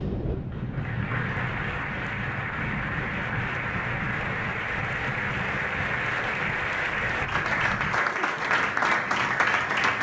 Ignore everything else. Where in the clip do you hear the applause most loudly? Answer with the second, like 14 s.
9 s.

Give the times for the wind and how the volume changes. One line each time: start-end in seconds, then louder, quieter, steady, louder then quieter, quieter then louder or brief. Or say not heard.
0.0-9.9 quieter.